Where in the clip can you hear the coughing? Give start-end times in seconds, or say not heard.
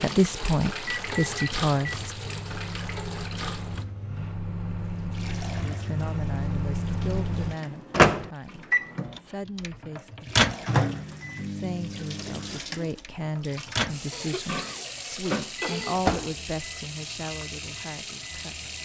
14.1-15.9.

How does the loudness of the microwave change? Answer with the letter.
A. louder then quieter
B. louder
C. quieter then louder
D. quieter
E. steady
A.